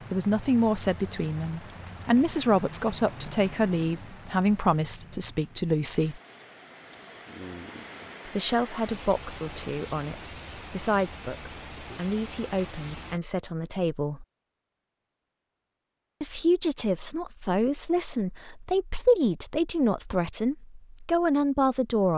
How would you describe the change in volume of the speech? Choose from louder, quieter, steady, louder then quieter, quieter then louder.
quieter then louder.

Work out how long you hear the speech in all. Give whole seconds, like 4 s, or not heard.
18 s.